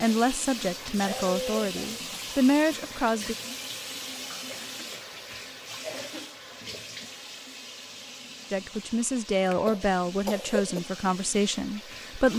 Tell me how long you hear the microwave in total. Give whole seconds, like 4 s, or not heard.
not heard.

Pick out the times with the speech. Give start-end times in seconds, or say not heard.
0.0-3.4, 8.5-12.3.